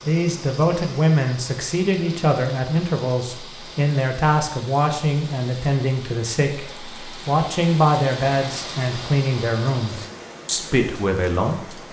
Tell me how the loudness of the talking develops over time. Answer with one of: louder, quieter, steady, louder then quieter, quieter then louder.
steady.